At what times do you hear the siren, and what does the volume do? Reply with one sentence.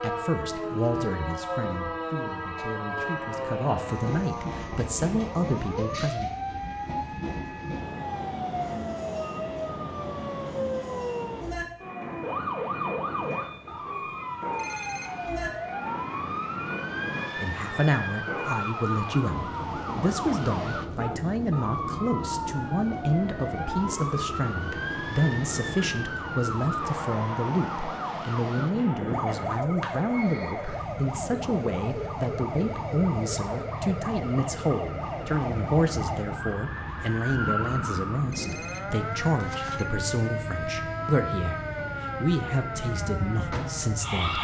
The siren can be heard from 0.0 to 44.3 s, at a steady volume.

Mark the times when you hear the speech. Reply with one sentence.
The speech can be heard from 0.0 to 6.5 s and from 17.4 to 44.3 s.